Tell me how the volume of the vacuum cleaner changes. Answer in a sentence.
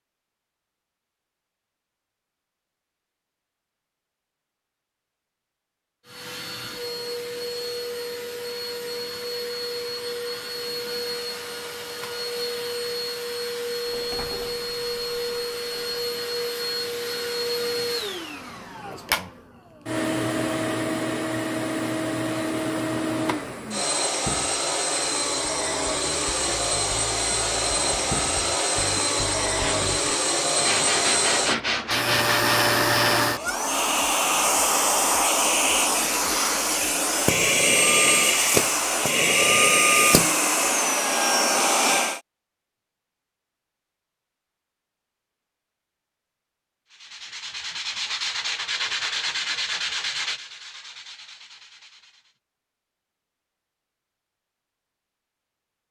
The volume of the vacuum cleaner goes up.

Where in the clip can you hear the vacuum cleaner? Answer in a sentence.
You can hear the vacuum cleaner from 6.0 to 42.2 s.